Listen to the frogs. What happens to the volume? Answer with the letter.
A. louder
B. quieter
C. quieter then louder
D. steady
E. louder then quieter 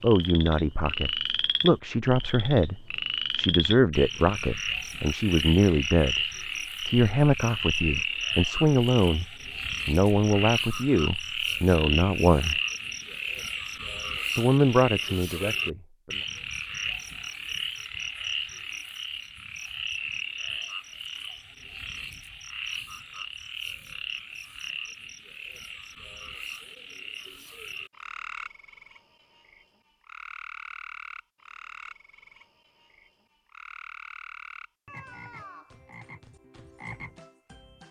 B.